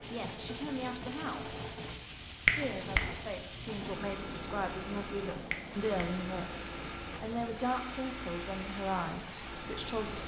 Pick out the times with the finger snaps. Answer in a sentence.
You can hear the finger snaps from 2.5 to 3.0 s and from 5.5 to 6.2 s.